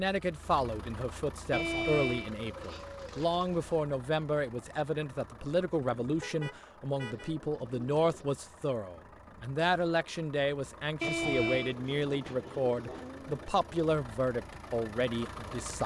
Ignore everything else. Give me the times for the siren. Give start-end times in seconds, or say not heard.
not heard.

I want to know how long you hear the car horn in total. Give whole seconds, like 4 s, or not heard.
3 s.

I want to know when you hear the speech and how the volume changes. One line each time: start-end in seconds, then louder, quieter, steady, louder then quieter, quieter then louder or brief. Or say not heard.
0.0-15.8 steady.